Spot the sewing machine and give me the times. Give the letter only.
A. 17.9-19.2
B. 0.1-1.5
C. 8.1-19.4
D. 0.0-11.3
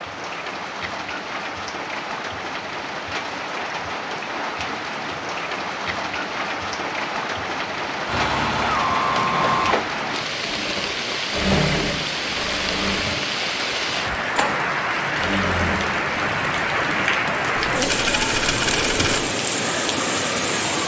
C.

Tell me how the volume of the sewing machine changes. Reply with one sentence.
The loudness of the sewing machine goes down.